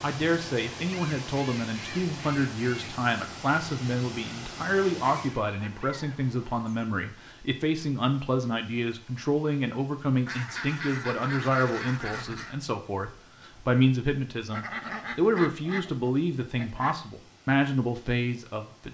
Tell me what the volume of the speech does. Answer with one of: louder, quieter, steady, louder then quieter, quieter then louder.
steady.